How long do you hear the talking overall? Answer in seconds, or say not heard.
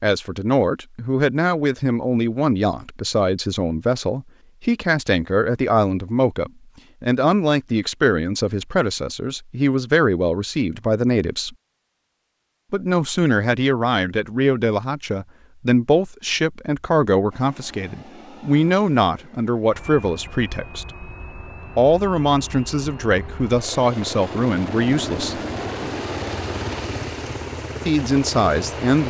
25 s.